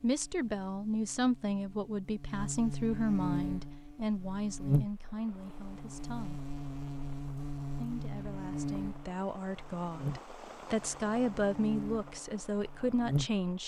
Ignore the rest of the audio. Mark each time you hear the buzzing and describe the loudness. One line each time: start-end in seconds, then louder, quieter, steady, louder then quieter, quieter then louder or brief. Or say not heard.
0.0-13.4 louder then quieter.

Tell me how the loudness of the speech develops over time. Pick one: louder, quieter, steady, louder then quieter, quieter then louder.
quieter then louder.